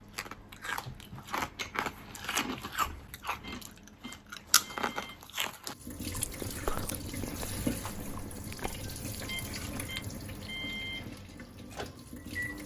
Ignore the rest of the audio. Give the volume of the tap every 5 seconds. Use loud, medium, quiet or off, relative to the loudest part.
off, loud, medium.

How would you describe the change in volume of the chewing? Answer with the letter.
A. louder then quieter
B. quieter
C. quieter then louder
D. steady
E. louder
B.